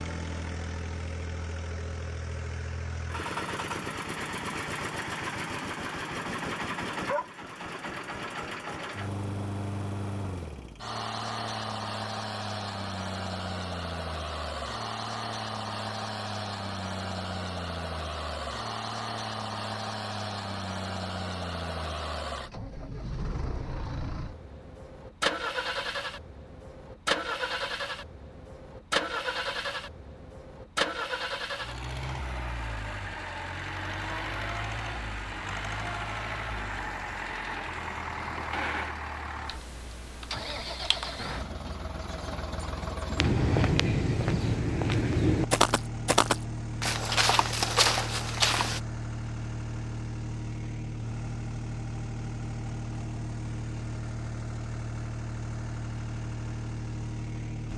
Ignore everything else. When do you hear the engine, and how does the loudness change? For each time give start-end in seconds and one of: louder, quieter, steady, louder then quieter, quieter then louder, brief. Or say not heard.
0.0-57.7 steady.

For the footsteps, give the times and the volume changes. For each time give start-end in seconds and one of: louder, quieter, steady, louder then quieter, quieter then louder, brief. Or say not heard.
43.1-48.8 steady.